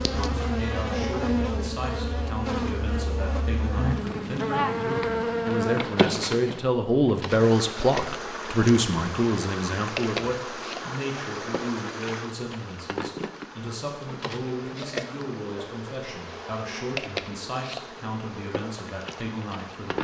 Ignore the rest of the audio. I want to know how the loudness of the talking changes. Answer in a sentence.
The loudness of the talking goes up, then down.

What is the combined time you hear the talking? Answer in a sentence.
The talking can be heard for 20 seconds in total.